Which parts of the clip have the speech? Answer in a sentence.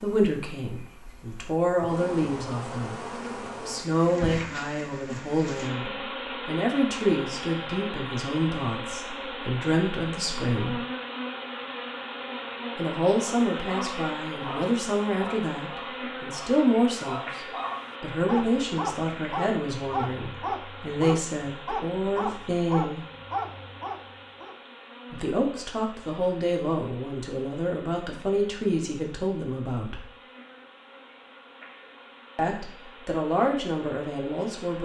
You can hear the speech from 0.0 to 3.0 s, from 3.6 to 10.8 s, from 12.8 to 23.1 s, from 25.1 to 30.1 s and from 32.4 to 34.8 s.